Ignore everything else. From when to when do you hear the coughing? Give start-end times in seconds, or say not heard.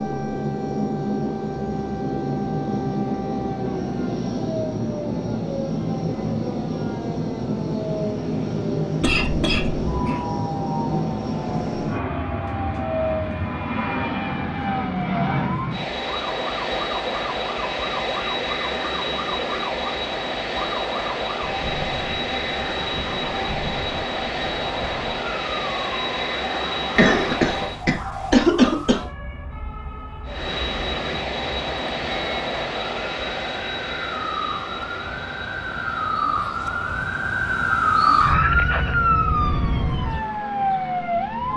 9.0-10.2, 26.9-29.1.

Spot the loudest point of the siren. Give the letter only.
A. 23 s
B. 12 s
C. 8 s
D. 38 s
D.